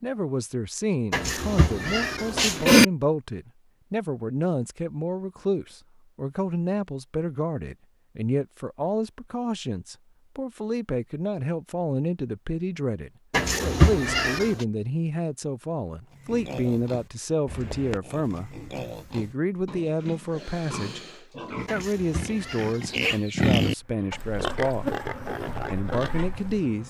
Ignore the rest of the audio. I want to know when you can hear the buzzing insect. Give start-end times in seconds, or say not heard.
23.8-26.8.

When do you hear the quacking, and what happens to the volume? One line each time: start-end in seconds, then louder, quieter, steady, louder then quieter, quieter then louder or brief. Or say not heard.
not heard.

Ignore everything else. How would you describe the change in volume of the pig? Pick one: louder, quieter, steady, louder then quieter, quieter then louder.
louder then quieter.